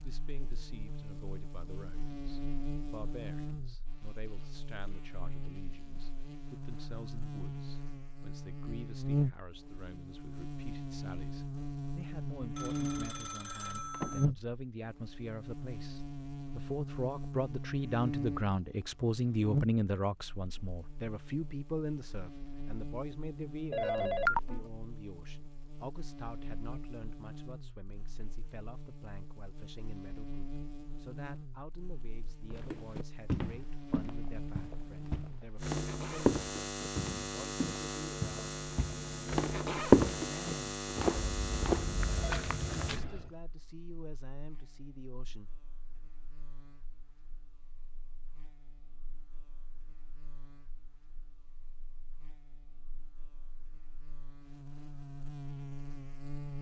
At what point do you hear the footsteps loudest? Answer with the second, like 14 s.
40 s.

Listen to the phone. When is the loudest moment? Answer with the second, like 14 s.
24 s.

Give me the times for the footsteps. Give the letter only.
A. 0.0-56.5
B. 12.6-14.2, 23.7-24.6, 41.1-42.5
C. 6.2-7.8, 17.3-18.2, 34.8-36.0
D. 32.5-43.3
D.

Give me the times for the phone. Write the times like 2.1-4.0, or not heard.
12.6-14.2, 23.7-24.6, 41.1-42.5.